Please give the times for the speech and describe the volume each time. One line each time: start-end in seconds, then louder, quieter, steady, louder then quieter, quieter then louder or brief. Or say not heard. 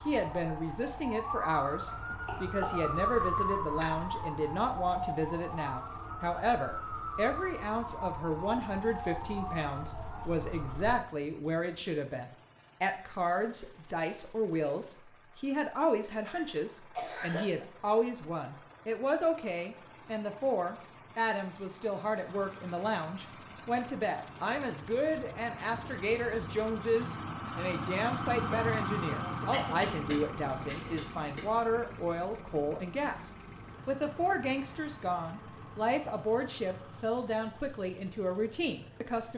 0.1-39.3 steady.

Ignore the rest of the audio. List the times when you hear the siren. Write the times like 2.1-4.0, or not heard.
0.0-11.0, 22.4-37.0.